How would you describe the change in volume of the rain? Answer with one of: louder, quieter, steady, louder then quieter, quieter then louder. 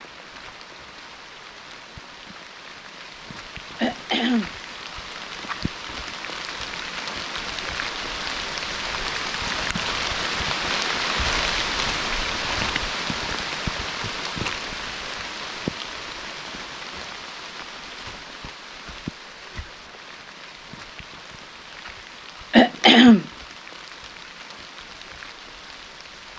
louder then quieter.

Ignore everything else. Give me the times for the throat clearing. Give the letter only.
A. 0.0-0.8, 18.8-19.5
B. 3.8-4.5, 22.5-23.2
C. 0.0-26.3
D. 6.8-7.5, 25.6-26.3
B.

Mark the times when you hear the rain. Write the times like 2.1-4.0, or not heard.
0.0-26.3.